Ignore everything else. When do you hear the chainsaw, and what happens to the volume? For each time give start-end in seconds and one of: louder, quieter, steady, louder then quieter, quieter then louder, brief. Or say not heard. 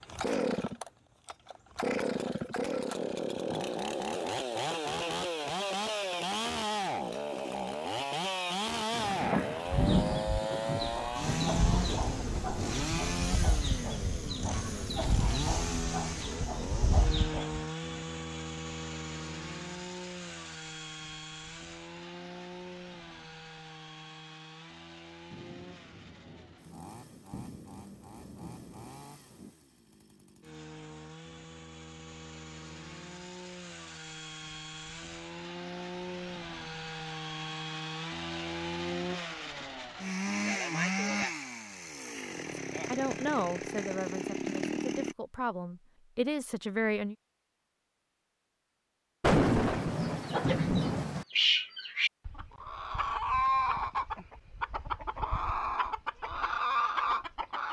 0.0-45.1 quieter then louder.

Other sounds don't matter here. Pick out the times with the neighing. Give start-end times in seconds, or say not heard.
not heard.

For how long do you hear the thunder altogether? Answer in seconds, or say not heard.
10 s.